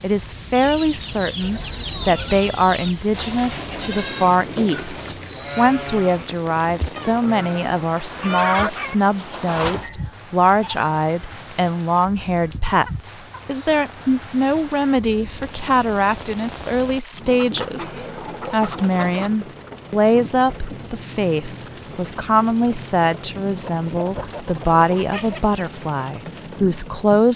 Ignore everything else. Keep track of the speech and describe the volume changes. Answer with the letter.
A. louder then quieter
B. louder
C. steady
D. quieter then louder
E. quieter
C.